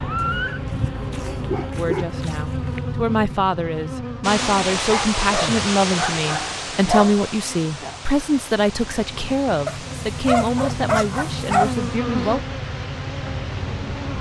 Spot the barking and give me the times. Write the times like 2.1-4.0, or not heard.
0.2-2.8, 4.8-7.3, 9.7-11.8.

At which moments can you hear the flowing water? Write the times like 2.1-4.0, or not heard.
4.2-14.1.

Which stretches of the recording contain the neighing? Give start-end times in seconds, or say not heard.
0.0-0.6.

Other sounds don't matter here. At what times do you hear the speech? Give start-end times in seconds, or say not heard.
1.8-12.4.